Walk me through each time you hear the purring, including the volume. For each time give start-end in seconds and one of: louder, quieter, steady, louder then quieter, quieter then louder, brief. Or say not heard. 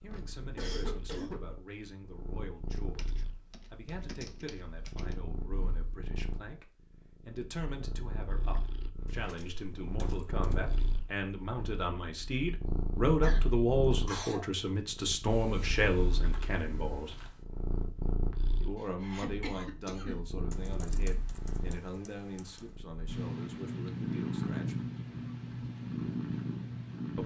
0.0-27.2 louder.